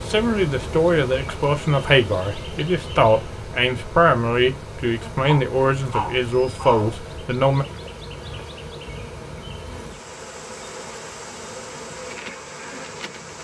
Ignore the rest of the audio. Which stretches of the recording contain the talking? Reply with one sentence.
You can hear the talking from 0.1 to 7.7 s.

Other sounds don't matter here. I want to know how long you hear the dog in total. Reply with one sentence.
You can hear the dog for 2 seconds altogether.